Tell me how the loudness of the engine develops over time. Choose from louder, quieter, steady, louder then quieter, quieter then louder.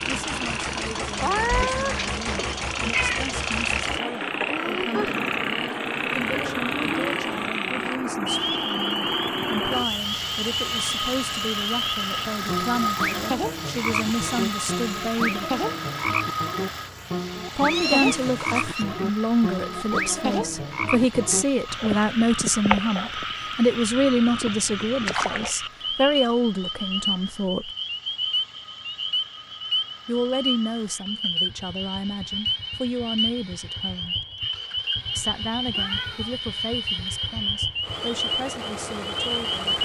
quieter then louder.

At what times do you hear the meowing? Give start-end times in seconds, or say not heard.
1.5-3.2, 17.7-18.9, 35.7-36.4.